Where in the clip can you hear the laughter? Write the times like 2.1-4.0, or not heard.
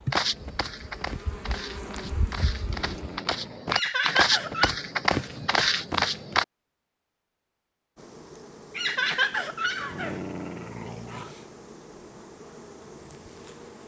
3.7-4.7, 8.8-10.2.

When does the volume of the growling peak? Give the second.
10 s.